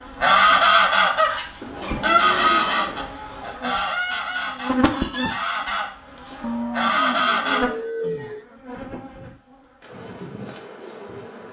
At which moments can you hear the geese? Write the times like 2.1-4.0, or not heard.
0.2-7.6.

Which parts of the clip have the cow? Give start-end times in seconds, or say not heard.
1.6-3.1, 6.4-8.4.